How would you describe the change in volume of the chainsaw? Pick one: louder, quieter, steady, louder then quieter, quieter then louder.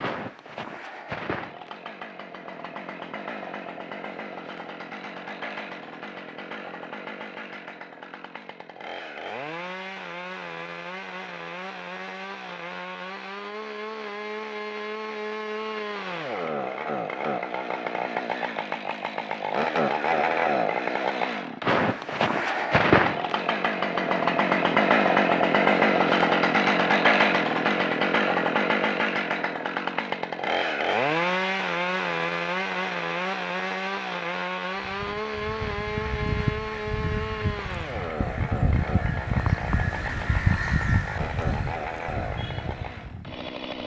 louder then quieter.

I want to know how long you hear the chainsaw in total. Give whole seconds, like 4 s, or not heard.
44 s.